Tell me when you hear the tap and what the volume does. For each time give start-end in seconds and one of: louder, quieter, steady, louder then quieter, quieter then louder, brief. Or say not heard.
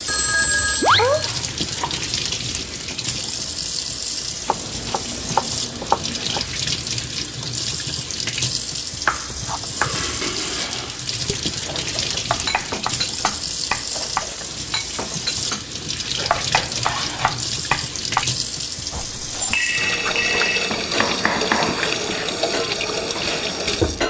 0.0-24.0 steady.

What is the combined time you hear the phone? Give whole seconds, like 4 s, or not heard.
4 s.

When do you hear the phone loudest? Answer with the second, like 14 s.
1 s.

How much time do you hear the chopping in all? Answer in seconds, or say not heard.
10 s.